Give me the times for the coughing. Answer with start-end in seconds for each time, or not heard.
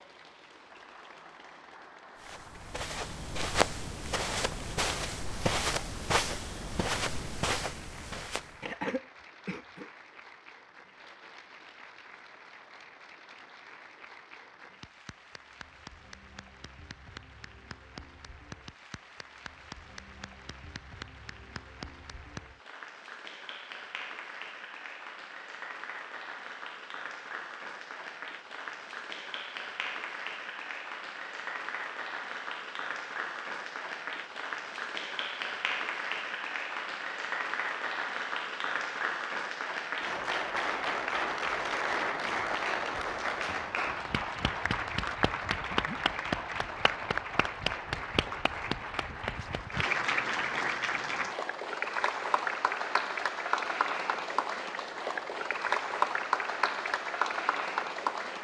8.6-9.9.